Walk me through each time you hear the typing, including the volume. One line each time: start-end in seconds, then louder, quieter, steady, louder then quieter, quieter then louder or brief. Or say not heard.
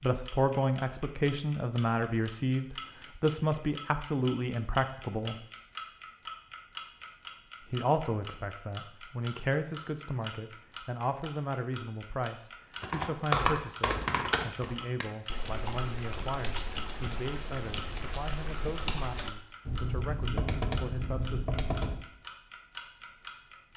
12.8-21.9 quieter then louder.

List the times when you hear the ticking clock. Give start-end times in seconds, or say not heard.
0.0-23.7.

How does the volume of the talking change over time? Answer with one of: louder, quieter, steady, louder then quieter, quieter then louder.
quieter.